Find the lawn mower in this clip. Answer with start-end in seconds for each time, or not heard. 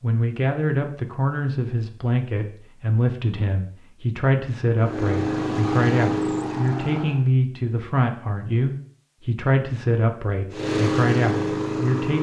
4.8-7.2, 10.5-12.1.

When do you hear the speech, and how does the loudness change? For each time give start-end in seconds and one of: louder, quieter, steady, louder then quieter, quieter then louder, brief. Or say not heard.
0.0-12.1 steady.